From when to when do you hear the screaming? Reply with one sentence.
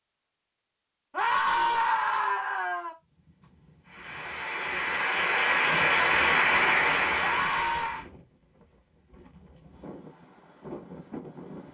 The screaming can be heard from 1.1 to 3.0 s and from 7.2 to 8.1 s.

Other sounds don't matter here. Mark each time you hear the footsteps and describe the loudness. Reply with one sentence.
You can't hear the footsteps here.